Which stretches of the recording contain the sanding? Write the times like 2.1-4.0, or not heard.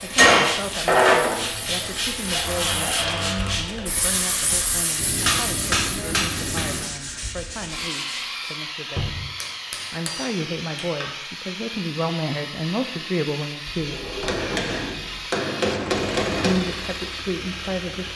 0.0-8.6.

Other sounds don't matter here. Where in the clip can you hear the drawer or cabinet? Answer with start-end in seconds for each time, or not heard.
2.3-3.6, 8.9-9.3, 13.7-15.3.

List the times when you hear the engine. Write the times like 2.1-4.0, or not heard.
15.7-18.1.